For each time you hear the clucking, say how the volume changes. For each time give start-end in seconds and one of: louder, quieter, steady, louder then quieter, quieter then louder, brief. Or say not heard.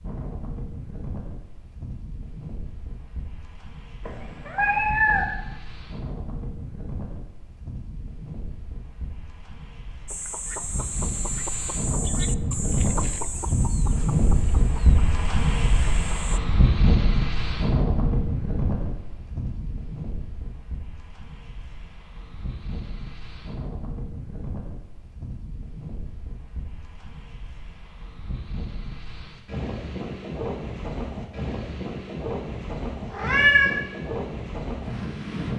10.1-16.4 quieter.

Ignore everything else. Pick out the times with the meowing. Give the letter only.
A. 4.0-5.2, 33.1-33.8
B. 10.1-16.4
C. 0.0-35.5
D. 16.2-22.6
A.